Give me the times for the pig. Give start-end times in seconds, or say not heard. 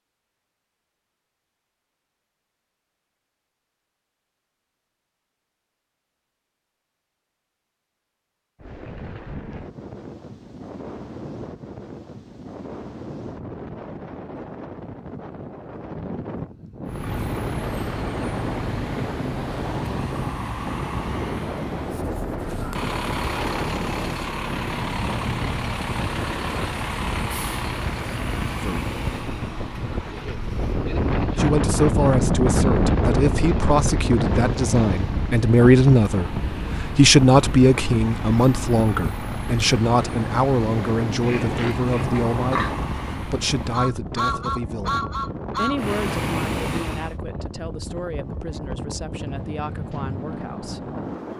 41.2-42.8.